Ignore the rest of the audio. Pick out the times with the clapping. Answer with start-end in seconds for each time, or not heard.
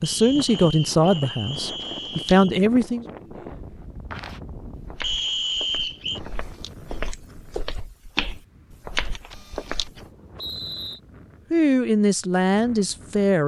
not heard.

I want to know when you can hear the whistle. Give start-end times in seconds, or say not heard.
0.0-2.5, 5.0-6.2, 10.3-11.0.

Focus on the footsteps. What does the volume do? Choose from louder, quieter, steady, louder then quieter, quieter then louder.
quieter then louder.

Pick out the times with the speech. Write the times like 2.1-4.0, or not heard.
0.0-3.0, 11.5-13.4.